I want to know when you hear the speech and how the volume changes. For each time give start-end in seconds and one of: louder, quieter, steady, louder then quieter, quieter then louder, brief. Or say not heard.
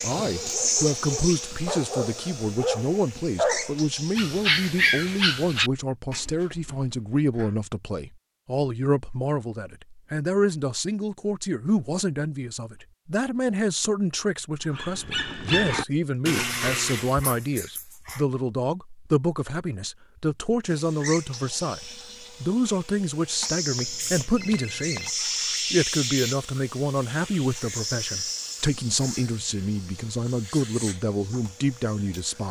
0.0-25.1 steady
25.7-32.4 steady.